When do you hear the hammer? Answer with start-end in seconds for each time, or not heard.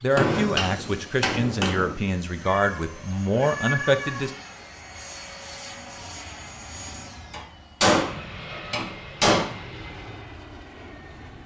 0.1-1.9, 7.3-9.5.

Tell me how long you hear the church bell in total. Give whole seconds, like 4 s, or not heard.
not heard.